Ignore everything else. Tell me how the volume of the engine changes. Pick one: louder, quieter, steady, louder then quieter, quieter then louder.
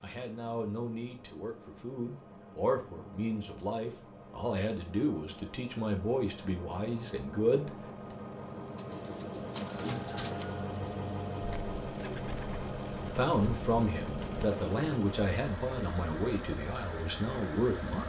louder.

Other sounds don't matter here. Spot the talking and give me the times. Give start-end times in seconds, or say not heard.
0.0-7.7, 13.2-18.0.